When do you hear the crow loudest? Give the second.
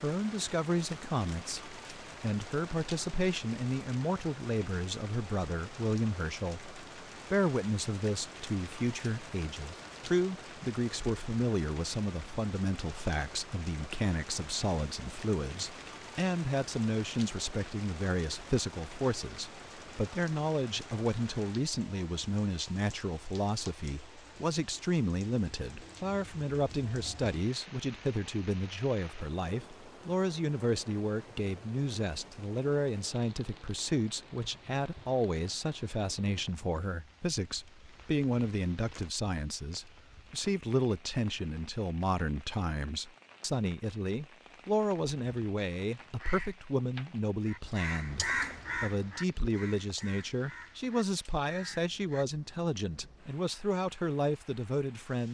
48 s.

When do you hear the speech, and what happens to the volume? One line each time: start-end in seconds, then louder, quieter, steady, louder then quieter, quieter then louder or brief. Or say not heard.
0.0-55.3 steady.